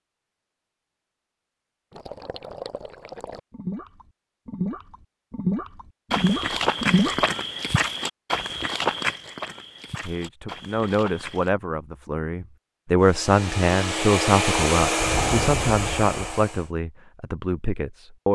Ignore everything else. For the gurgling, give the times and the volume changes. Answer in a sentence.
The gurgling can be heard from 1.9 to 7.2 s, getting louder.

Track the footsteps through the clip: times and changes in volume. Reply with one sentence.
You can hear the footsteps from 6.1 to 11.6 s, getting quieter.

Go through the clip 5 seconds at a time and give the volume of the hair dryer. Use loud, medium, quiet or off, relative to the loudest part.
off, off, loud, loud.